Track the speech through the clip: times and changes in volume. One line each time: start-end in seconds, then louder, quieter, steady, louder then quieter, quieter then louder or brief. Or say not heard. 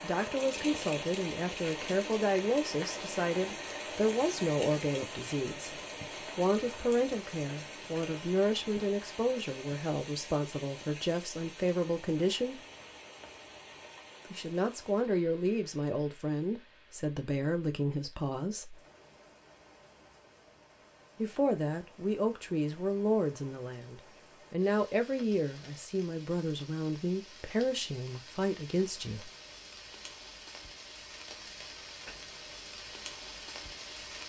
0.0-12.6 steady
14.3-18.8 steady
21.1-29.3 steady.